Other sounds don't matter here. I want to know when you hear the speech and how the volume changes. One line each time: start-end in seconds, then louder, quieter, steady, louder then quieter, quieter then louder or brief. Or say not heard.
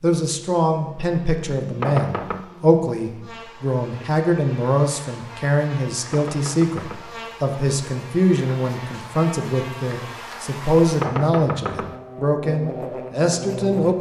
0.0-13.9 steady.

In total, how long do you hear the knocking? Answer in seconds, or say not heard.
3 s.